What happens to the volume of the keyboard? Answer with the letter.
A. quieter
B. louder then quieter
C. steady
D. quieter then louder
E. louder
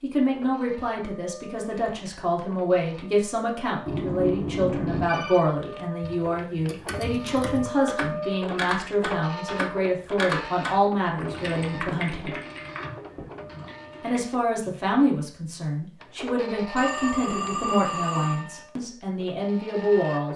B.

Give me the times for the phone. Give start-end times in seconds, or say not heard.
3.9-5.5, 16.8-18.4.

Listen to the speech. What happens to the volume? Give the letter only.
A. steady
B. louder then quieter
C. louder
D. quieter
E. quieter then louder
A.